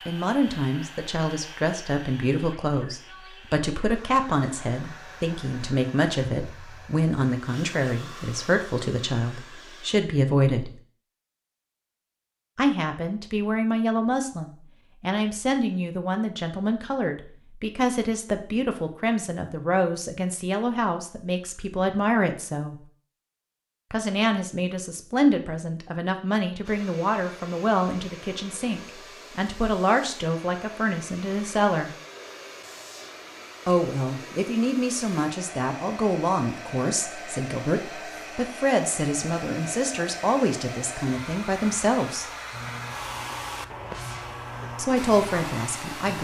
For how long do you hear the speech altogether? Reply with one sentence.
The speech can be heard for 39 seconds in total.